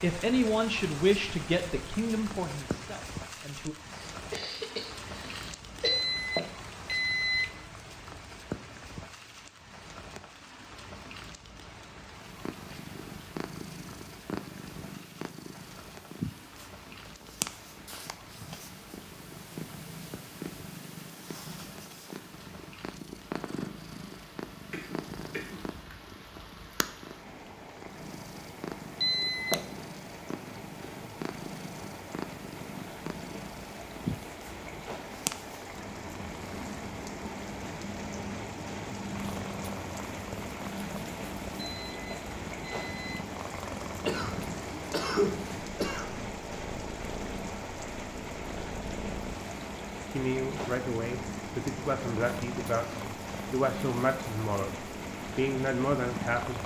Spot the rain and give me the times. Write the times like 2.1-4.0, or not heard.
0.0-56.6.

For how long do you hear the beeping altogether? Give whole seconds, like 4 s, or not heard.
4 s.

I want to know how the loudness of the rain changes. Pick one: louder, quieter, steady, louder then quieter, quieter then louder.
quieter then louder.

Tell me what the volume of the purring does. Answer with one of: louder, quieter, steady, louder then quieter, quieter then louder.
steady.